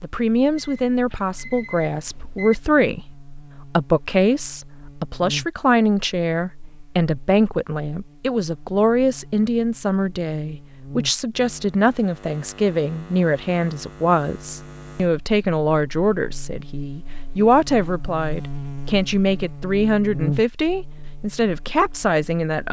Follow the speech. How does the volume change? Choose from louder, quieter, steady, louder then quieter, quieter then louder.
steady.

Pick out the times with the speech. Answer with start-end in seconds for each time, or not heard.
0.0-22.6.